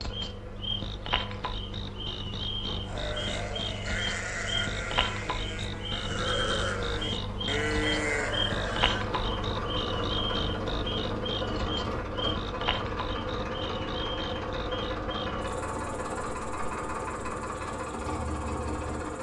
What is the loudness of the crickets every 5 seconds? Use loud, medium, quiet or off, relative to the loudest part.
loud, loud, loud, quiet.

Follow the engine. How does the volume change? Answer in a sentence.
The loudness of the engine goes up.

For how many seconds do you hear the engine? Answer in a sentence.
You can hear the engine for 19 seconds altogether.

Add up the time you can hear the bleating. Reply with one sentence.
The bleating can be heard for 6 seconds in total.